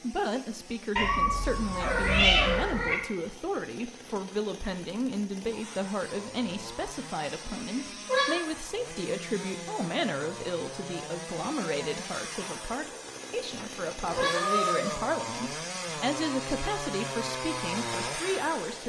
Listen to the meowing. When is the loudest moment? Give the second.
2 s.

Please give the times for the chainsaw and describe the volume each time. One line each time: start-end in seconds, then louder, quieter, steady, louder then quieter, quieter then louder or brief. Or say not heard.
0.0-18.8 louder.